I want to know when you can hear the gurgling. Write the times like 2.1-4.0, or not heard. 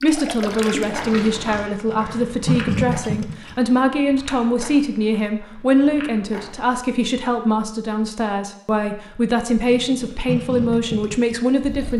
0.0-3.5, 9.5-11.9.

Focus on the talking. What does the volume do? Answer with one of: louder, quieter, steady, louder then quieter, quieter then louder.
steady.